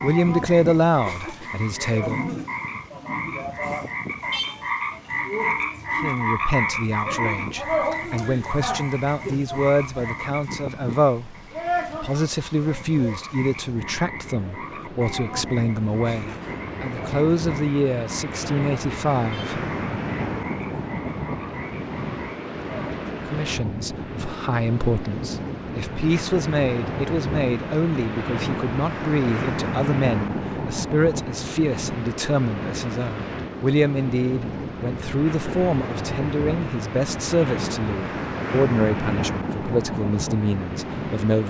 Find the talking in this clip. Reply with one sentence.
You can hear the talking from 0.0 to 2.4 s, from 6.0 to 11.3 s, from 12.0 to 19.6 s and from 23.1 to 41.4 s.